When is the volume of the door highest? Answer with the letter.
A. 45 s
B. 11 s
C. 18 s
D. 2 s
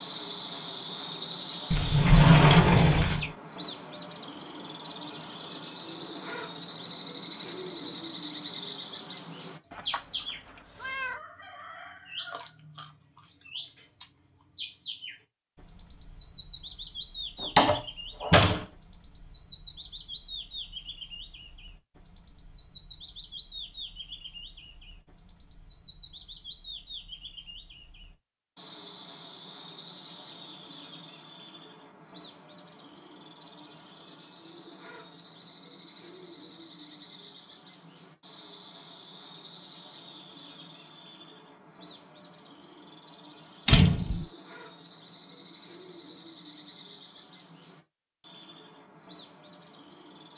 D.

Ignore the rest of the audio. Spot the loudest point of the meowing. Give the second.
11 s.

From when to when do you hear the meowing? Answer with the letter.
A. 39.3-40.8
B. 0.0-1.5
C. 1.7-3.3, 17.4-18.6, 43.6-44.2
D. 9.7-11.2
D.